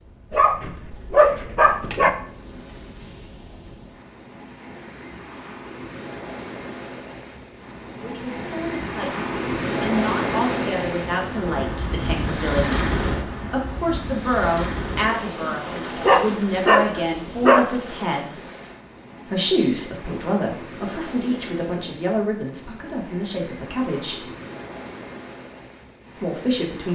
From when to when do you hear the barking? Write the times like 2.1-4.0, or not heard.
0.3-2.1, 15.9-17.7.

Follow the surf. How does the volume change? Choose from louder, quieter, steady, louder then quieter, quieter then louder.
louder then quieter.